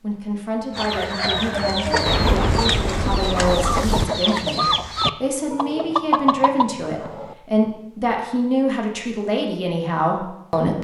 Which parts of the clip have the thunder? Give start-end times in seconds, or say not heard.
2.0-4.0.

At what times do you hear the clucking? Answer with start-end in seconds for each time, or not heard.
0.8-7.3.